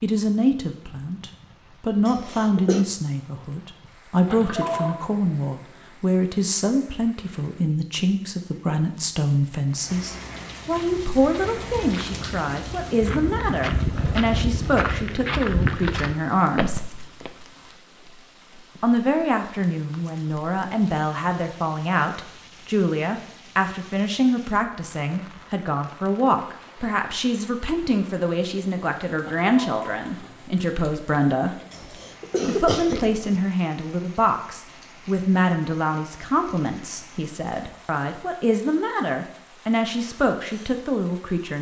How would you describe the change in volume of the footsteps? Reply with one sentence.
The volume of the footsteps goes up.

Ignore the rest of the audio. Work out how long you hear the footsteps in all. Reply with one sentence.
You can hear the footsteps for 7 seconds altogether.